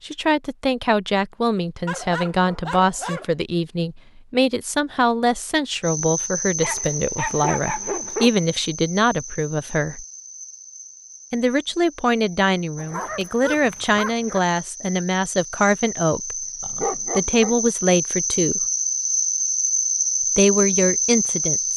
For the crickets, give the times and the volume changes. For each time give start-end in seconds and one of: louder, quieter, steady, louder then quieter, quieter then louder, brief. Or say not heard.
5.8-21.7 quieter then louder.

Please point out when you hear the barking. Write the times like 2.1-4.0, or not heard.
1.9-3.2, 6.5-8.4, 12.8-14.4, 16.6-17.6.